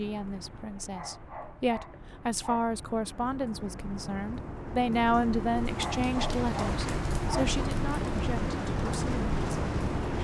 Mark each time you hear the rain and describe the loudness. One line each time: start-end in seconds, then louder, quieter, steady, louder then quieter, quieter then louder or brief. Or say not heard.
0.0-10.1 louder.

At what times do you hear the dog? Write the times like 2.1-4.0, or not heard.
0.9-2.7, 5.8-7.6.